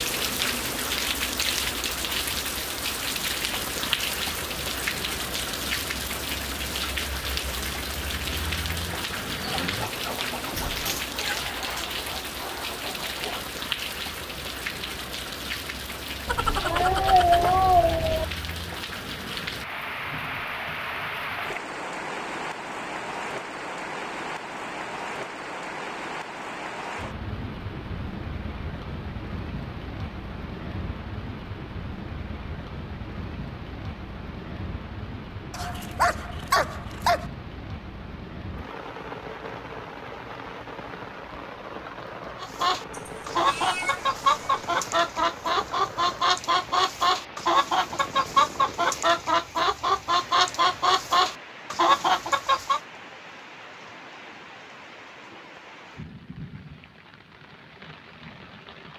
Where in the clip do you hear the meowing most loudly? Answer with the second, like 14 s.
17 s.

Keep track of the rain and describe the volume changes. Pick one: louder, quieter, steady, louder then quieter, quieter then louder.
quieter.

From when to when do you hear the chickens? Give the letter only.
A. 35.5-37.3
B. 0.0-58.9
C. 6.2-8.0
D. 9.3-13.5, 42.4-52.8
D.